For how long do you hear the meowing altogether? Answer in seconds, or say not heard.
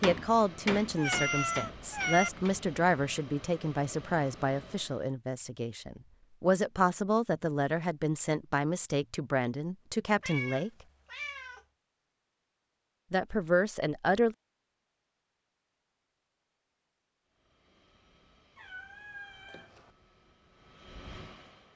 4 s.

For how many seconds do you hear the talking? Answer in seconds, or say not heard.
12 s.